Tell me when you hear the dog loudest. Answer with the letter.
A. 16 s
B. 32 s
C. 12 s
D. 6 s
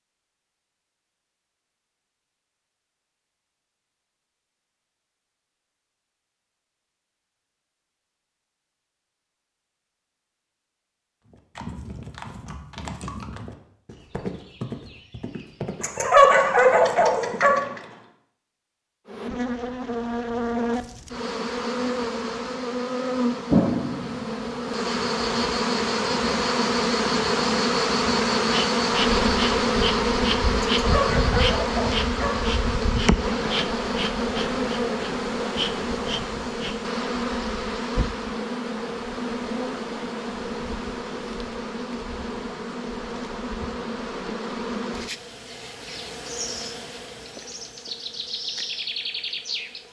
A.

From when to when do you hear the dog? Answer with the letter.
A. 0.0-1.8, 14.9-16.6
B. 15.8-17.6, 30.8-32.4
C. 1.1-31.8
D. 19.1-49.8
B.